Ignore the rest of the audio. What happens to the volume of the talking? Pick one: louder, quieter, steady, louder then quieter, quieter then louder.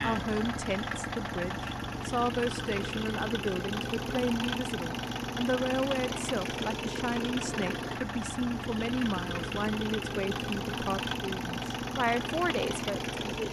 steady.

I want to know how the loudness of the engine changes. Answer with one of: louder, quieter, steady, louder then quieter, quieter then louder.
steady.